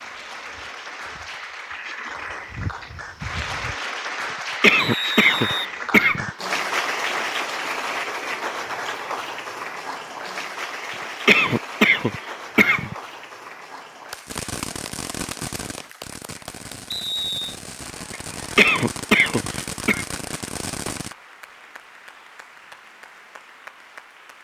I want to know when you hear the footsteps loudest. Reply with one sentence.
The loudest moment of the footsteps is at 3 seconds.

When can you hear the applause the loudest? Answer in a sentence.
The volume of the applause peaks at 7 seconds.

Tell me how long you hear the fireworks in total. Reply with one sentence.
The fireworks can be heard for 7 seconds in total.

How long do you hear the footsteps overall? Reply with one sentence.
The footsteps can be heard for 4 seconds in total.